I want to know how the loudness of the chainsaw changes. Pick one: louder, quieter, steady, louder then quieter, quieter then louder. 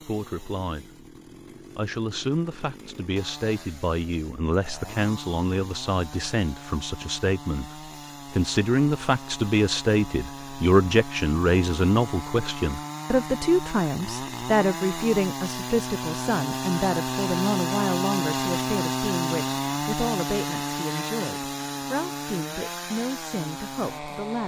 louder.